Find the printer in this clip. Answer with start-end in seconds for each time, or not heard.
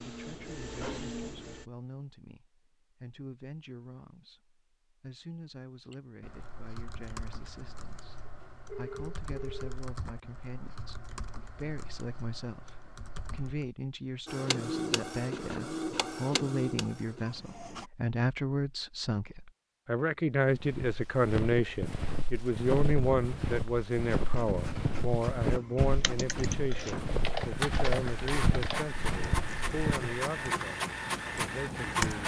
0.0-1.6, 14.2-17.9, 24.1-32.2.